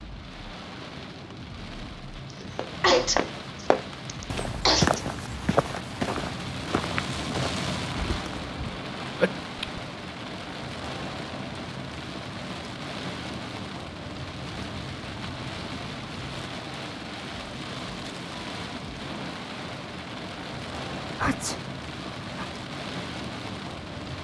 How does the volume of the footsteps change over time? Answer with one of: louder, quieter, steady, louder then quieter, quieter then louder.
quieter.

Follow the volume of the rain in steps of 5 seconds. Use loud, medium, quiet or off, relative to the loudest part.
medium, loud, loud, loud, loud.